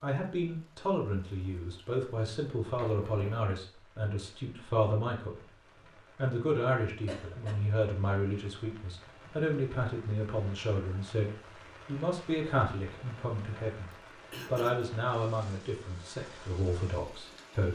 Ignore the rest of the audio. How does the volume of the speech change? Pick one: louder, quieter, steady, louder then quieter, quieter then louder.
steady.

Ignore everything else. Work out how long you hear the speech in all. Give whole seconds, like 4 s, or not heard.
17 s.